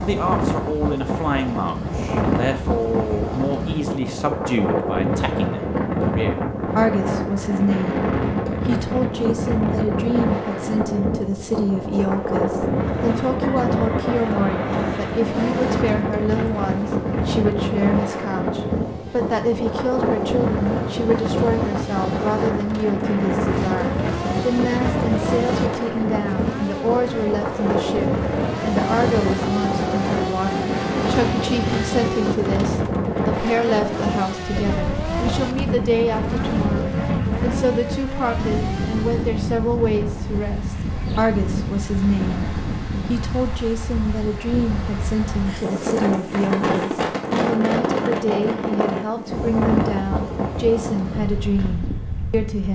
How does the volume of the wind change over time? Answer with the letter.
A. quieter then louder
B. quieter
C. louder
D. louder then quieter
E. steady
E.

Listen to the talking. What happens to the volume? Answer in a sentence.
The loudness of the talking stays about the same.